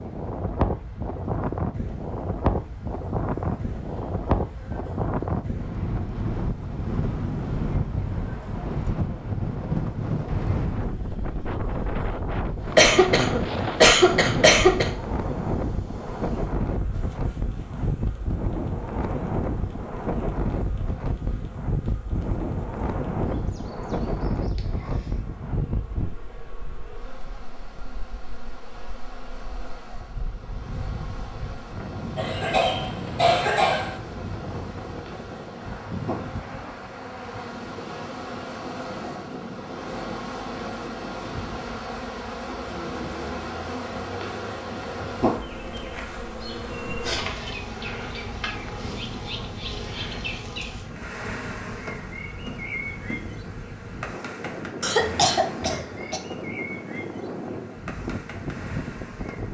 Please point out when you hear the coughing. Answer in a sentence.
The coughing can be heard from 12.8 to 14.9 s, from 32.1 to 34.0 s and from 54.8 to 56.2 s.